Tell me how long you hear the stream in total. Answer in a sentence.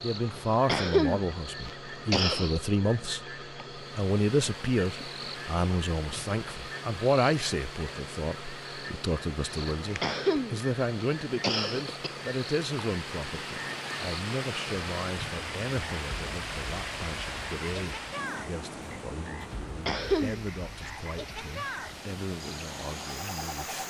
You can hear the stream for 20 seconds altogether.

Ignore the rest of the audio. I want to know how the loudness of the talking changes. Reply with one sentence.
The volume of the talking goes down.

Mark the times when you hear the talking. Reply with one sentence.
The talking can be heard from 0.0 to 23.8 s.